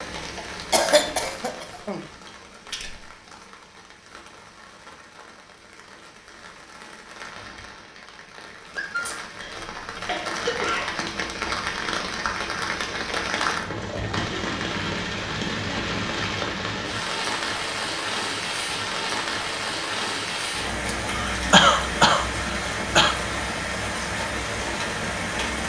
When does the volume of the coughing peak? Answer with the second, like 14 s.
22 s.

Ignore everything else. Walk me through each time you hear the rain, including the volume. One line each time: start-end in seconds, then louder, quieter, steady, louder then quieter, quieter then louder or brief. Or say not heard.
0.0-25.6 louder.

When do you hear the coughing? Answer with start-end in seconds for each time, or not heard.
0.3-2.0, 9.4-11.0, 21.3-23.1.